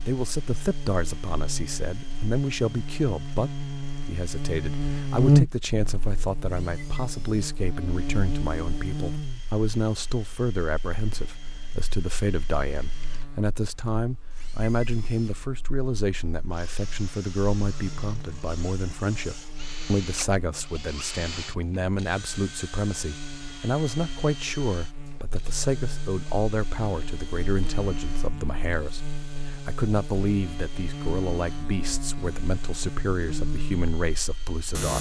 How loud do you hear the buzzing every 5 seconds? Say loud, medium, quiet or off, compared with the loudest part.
medium, loud, quiet, quiet, quiet, quiet, medium.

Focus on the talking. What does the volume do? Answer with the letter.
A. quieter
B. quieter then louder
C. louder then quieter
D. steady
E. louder
D.